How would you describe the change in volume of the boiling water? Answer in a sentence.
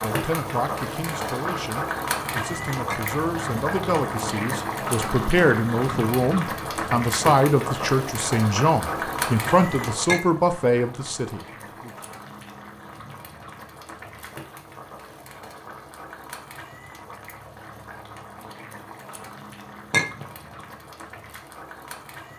The volume of the boiling water goes down.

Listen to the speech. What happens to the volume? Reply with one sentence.
The loudness of the speech goes up.